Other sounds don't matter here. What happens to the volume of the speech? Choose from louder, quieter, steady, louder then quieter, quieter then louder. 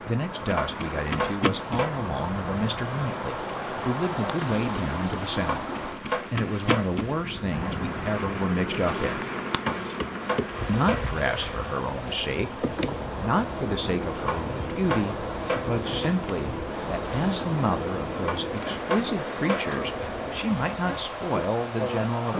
steady.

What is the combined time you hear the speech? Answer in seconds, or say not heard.
21 s.